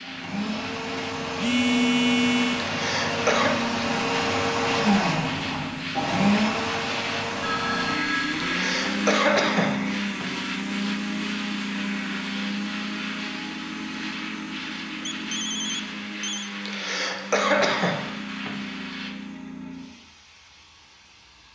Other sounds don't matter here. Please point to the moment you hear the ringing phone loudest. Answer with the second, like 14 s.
2 s.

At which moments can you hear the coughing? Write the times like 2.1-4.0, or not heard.
2.6-3.5, 8.4-10.2, 16.6-18.5.